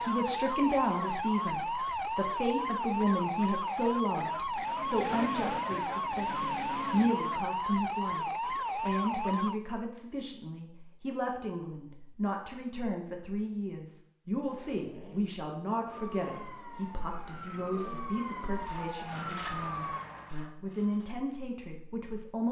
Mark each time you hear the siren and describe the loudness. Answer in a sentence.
You can hear the siren from 0.0 to 9.6 s, at a steady volume; and from 15.8 to 20.1 s, getting louder.